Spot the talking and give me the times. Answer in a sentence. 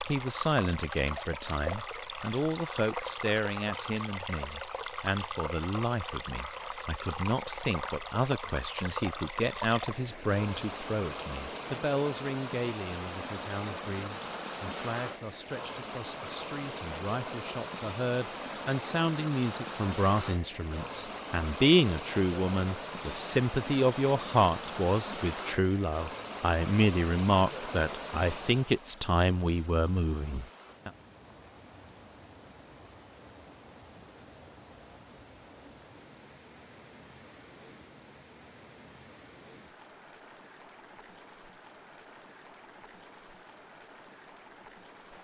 You can hear the talking from 0.1 to 30.9 s.